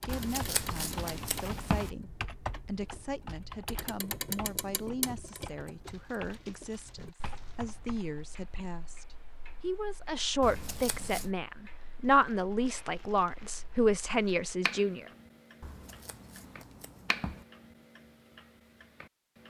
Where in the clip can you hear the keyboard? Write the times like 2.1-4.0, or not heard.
0.0-8.2.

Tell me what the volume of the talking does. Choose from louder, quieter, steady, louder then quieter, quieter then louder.
louder.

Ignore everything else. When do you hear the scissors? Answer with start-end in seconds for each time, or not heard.
0.1-1.9, 10.4-11.3, 15.6-17.4.